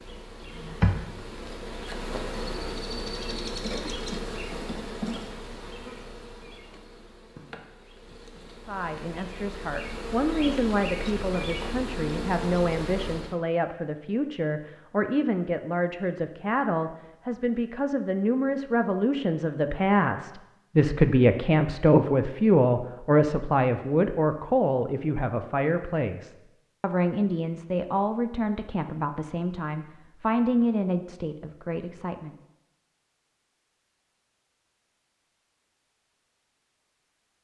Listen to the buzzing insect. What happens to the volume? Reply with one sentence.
The loudness of the buzzing insect goes down, then up.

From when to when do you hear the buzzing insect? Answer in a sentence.
You can hear the buzzing insect from 0.0 to 13.3 s.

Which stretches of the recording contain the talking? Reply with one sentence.
You can hear the talking from 8.7 to 32.4 s.